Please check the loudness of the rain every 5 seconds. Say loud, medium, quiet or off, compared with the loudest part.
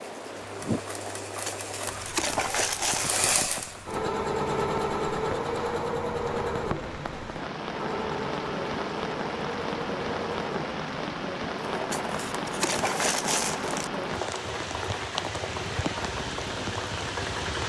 medium, loud, loud, loud.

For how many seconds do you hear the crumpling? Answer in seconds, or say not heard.
4 s.